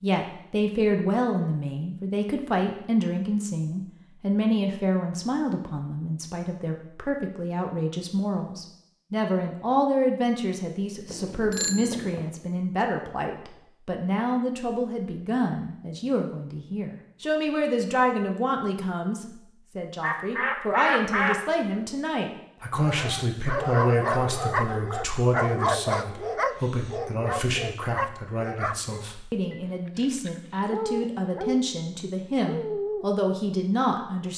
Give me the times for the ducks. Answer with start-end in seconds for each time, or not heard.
20.0-21.4.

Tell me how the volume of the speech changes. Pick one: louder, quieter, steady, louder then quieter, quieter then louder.
steady.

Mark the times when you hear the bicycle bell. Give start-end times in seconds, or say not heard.
11.1-12.3.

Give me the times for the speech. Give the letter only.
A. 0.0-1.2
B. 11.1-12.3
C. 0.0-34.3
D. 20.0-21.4
C.